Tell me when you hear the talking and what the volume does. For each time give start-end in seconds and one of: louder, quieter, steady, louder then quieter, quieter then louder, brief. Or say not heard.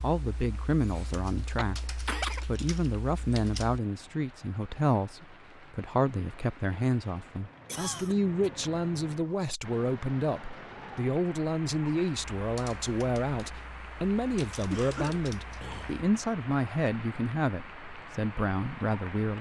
0.0-19.3 steady.